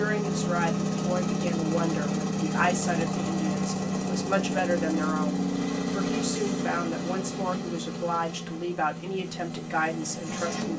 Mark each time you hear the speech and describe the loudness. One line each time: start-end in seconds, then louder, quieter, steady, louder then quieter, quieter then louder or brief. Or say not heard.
0.0-10.7 steady.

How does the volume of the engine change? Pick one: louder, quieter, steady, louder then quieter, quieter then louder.
quieter.